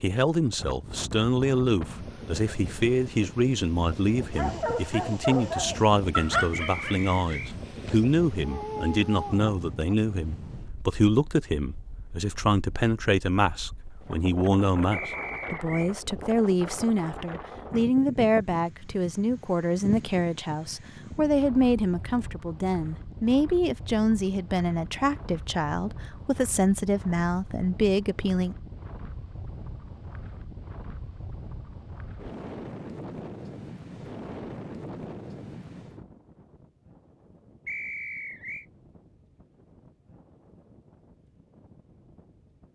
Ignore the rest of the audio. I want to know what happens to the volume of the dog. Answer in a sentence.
The volume of the dog goes down, then up.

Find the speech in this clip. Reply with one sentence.
You can hear the speech from 0.0 to 28.6 s.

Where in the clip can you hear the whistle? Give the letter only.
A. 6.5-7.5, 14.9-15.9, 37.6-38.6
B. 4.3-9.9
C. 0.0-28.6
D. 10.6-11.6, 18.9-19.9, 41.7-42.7
A.